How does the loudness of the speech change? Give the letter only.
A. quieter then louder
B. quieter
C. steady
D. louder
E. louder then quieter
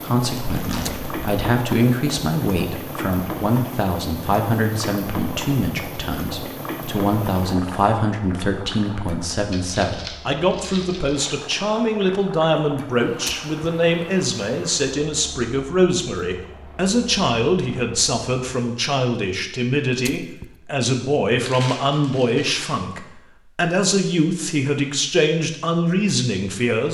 C.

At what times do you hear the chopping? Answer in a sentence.
The chopping can't be heard in this clip.